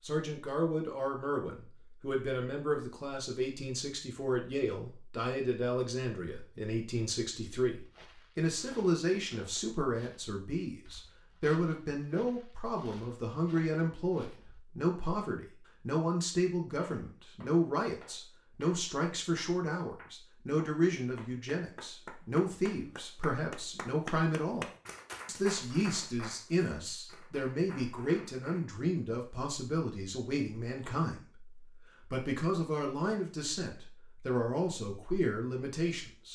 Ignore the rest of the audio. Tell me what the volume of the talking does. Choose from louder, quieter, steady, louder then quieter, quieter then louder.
steady.